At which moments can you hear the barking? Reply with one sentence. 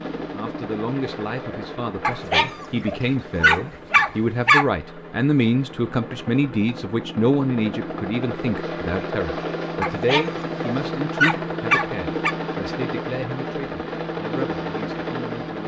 The barking can be heard from 2.0 to 4.7 s and from 9.8 to 12.3 s.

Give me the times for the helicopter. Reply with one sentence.
The helicopter can be heard from 0.0 to 15.6 s.